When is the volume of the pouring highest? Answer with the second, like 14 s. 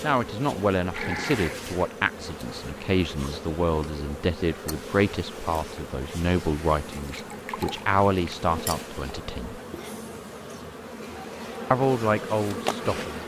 1 s.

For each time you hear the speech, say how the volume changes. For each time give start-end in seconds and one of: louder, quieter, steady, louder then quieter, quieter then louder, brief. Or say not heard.
0.0-9.6 steady
11.7-13.2 brief.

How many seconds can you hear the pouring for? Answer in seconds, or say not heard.
2 s.